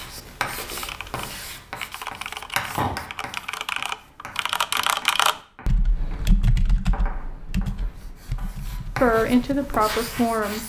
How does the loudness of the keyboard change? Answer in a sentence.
The loudness of the keyboard goes up, then down.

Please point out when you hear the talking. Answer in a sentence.
The talking can be heard from 9.0 to 10.6 s.